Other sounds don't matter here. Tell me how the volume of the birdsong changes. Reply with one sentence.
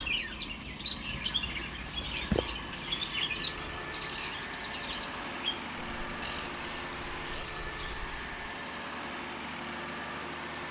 The loudness of the birdsong goes down.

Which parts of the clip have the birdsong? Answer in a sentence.
The birdsong can be heard from 0.0 to 8.3 s.